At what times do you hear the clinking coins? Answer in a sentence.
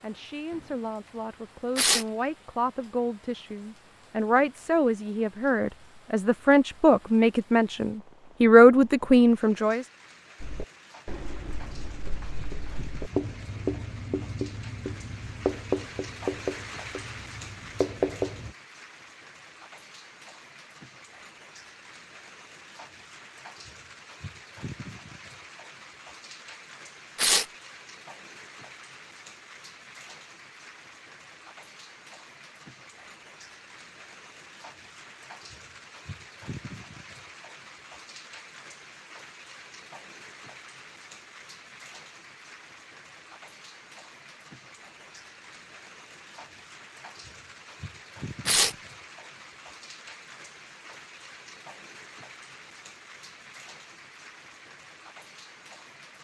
The clinking coins can't be heard in this clip.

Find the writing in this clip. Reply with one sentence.
The writing can be heard from 10.4 to 18.5 s.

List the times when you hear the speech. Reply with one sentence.
The speech can be heard from 0.0 to 9.8 s.